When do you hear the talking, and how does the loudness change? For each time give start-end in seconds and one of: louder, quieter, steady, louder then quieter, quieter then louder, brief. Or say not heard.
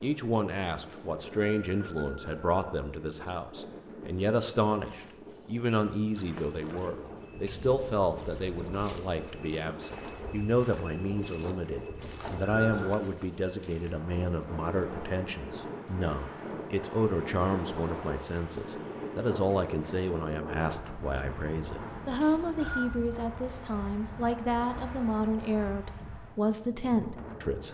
0.0-27.6 steady.